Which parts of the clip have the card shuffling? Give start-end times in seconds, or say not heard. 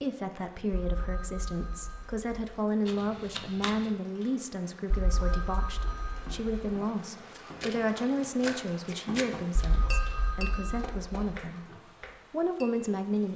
2.9-3.9, 7.3-9.7.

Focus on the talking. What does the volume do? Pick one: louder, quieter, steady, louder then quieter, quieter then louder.
steady.